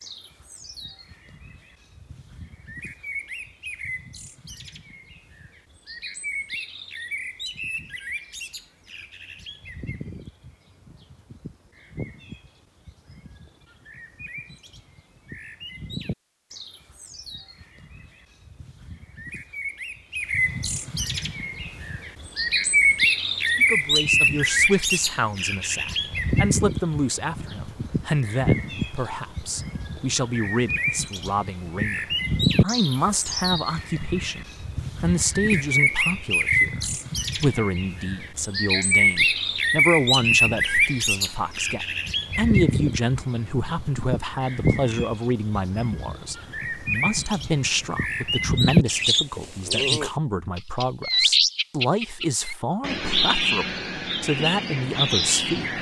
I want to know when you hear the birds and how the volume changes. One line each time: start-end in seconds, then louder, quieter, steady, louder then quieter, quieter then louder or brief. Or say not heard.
0.0-55.7 louder.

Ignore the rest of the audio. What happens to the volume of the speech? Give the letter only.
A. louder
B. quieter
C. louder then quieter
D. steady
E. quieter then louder
D.